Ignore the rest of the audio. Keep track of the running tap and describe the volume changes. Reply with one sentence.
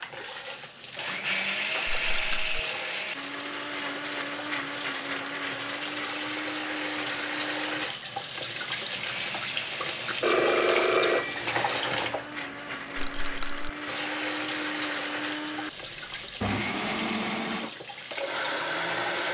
The loudness of the running tap goes up, then down.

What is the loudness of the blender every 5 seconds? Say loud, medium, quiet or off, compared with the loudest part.
loud, medium, medium, loud.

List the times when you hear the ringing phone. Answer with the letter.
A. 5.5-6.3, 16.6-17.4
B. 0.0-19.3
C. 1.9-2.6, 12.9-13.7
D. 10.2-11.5
D.